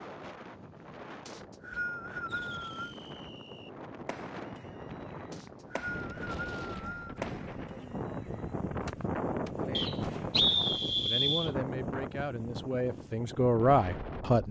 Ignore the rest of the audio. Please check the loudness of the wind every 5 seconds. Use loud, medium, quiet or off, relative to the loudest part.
medium, loud, loud.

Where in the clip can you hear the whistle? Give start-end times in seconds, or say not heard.
1.2-3.0, 5.3-7.2, 9.8-11.5.